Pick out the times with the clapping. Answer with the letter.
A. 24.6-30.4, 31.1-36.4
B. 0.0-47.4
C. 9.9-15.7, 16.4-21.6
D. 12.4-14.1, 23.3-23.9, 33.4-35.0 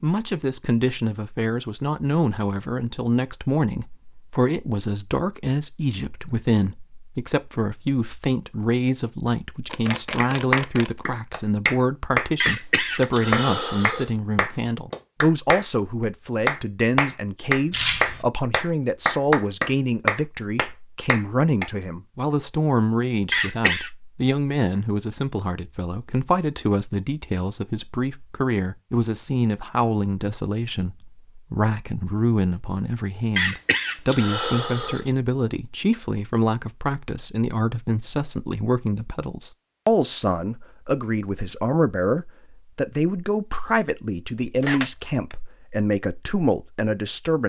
C.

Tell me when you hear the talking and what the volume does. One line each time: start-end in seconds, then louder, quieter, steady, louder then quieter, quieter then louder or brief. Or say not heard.
0.0-47.4 steady.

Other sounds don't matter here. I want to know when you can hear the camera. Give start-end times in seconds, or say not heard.
9.7-10.9, 17.7-18.2, 44.6-45.4.